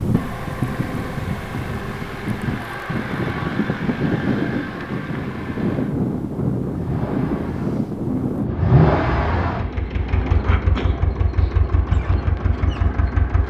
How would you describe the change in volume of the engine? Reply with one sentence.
The loudness of the engine goes up, then down.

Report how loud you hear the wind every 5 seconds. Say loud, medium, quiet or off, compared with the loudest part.
loud, loud, medium.